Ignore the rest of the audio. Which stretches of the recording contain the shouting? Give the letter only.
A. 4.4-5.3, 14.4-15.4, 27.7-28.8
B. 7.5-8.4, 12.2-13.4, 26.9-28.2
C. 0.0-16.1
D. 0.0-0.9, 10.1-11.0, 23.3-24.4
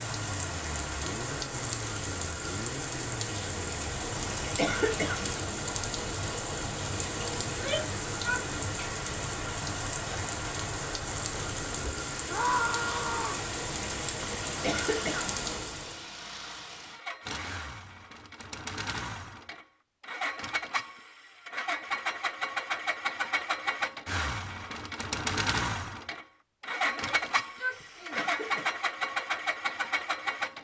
B.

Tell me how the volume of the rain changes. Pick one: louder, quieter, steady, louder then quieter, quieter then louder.
steady.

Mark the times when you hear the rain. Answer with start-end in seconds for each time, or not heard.
0.0-16.1.